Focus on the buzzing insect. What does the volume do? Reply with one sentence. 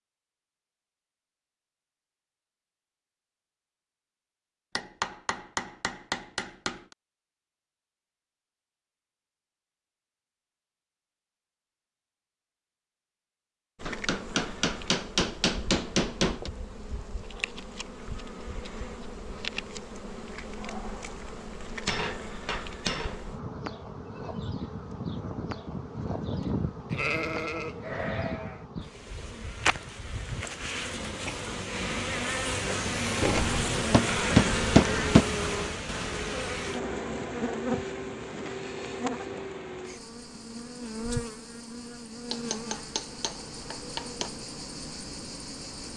The loudness of the buzzing insect goes up, then down.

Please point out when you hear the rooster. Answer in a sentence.
You can't hear the rooster here.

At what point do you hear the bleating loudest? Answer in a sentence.
The loudest moment of the bleating is at 27 seconds.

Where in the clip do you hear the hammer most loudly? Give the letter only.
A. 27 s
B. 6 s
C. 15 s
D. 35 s
D.